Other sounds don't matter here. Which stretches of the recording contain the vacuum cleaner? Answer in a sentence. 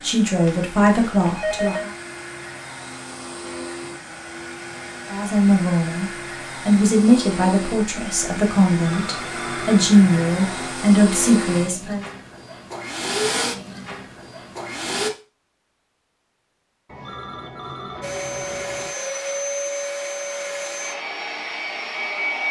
You can hear the vacuum cleaner from 0.0 to 15.1 s and from 18.0 to 22.4 s.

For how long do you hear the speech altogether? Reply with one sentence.
The speech can be heard for 9 seconds in total.